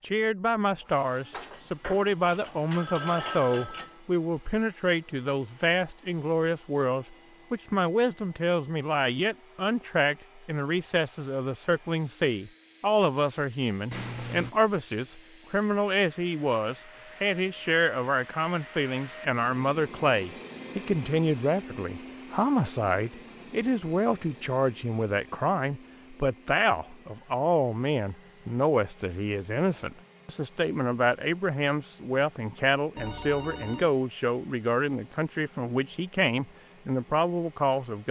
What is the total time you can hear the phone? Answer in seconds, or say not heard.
4 s.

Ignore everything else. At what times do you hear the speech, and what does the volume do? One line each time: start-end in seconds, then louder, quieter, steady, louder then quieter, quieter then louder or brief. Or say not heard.
0.0-38.0 steady.